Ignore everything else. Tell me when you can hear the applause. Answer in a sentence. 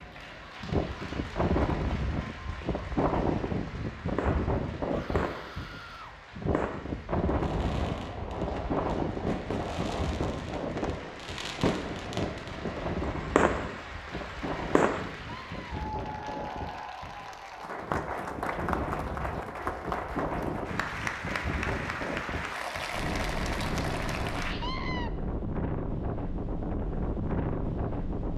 You can hear the applause from 0.0 to 24.6 s.